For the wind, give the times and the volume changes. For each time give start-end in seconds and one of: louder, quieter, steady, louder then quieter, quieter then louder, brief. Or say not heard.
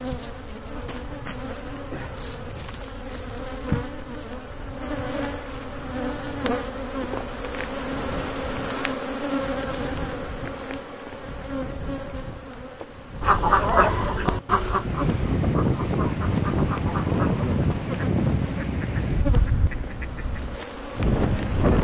0.0-21.7 louder.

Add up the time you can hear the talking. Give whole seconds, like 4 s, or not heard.
not heard.